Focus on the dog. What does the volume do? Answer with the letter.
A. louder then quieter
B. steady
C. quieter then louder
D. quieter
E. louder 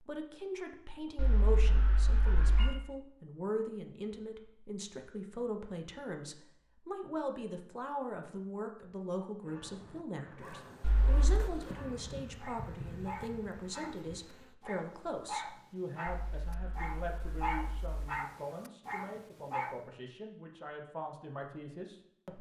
E.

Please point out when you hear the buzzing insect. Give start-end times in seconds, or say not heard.
10.4-14.6.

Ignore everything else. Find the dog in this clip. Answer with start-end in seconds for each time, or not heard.
9.4-19.8.